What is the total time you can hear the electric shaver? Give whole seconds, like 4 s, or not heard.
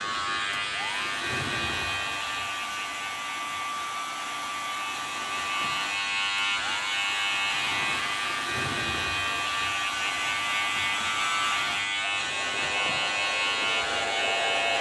15 s.